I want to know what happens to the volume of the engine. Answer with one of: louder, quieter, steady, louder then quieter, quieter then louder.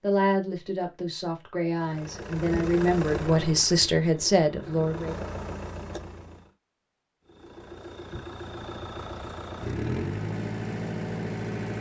quieter then louder.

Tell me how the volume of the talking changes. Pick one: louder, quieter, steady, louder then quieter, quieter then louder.
louder.